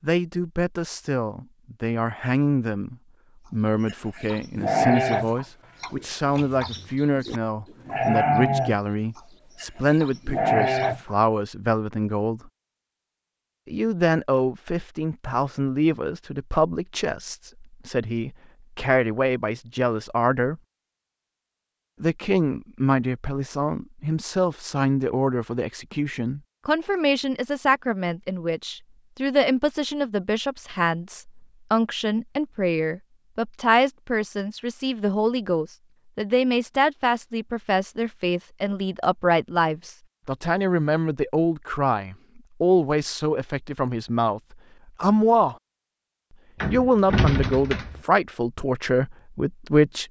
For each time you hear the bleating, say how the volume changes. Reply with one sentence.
The bleating can be heard from 3.9 to 11.2 s, getting quieter then louder.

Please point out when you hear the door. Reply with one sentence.
The door can be heard from 46.6 to 48.0 s.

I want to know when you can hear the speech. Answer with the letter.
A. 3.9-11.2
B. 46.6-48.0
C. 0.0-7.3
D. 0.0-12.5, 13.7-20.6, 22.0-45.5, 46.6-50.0
D.